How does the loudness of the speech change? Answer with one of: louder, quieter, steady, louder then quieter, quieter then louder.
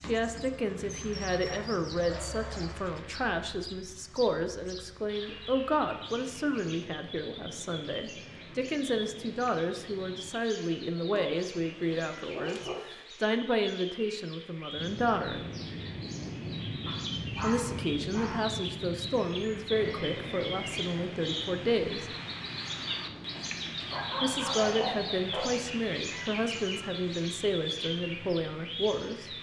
steady.